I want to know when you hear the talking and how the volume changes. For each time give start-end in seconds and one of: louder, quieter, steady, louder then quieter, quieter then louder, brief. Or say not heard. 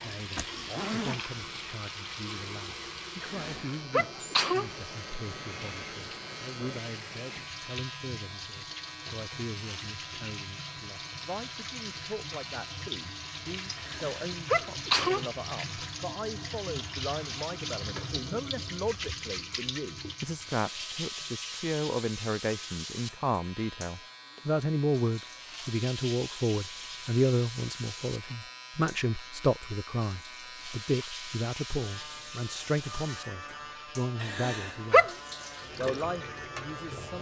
0.0-35.1 louder
35.8-37.1 brief.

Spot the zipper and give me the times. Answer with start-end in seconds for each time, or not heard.
0.3-1.2.